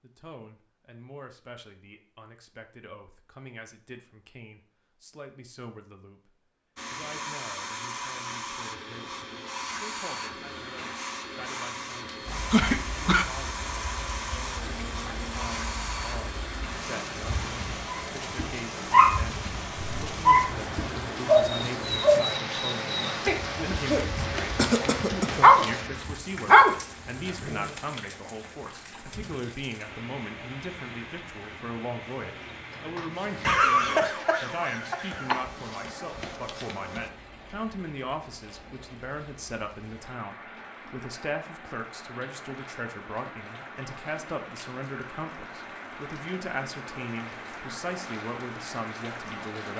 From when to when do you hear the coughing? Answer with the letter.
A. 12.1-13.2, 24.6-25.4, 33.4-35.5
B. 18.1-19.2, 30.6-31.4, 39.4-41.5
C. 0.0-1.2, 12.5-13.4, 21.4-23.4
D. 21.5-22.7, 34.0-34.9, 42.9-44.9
A.